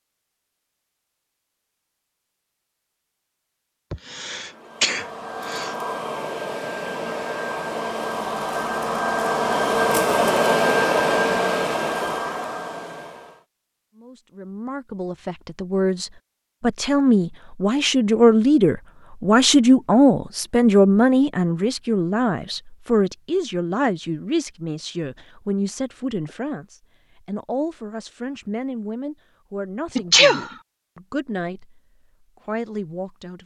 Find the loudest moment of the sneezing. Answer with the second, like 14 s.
30 s.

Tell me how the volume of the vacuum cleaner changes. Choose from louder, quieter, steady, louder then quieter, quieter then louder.
louder then quieter.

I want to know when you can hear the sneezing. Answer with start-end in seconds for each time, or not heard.
3.9-5.8, 29.9-30.6.